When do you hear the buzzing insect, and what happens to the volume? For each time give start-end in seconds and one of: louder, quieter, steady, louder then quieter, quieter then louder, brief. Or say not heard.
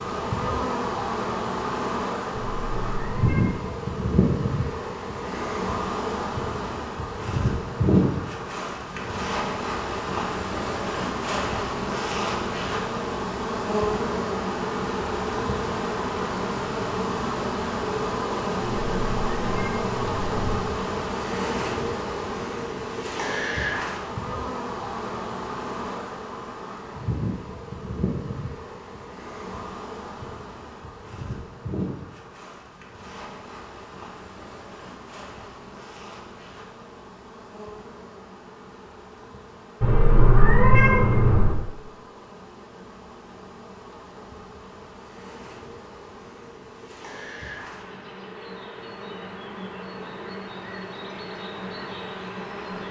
0.0-52.8 quieter.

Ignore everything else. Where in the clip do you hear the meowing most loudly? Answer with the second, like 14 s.
41 s.